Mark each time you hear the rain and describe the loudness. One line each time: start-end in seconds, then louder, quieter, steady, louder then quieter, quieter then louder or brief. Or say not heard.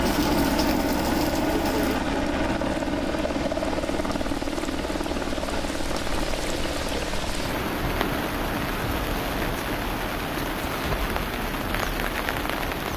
0.0-12.9 louder.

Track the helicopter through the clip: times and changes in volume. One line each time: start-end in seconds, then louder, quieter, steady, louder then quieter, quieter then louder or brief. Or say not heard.
0.0-12.9 quieter.